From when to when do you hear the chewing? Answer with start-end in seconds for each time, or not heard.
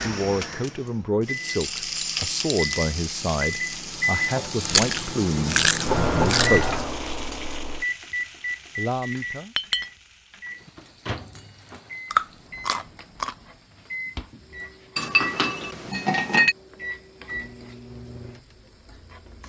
4.6-6.5, 12.1-13.3.